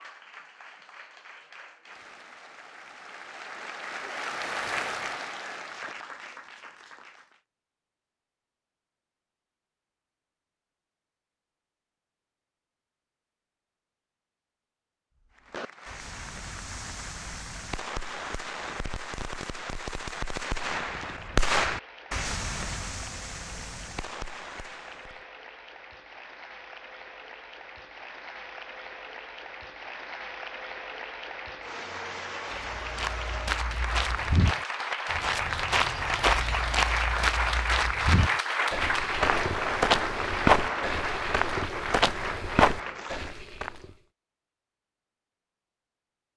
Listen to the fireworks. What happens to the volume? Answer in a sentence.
The loudness of the fireworks goes up, then down.